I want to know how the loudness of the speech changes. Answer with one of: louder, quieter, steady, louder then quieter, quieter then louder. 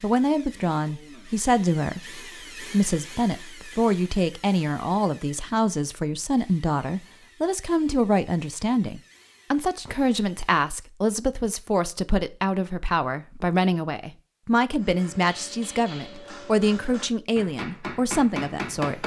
steady.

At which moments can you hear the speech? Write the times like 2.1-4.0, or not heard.
0.0-19.0.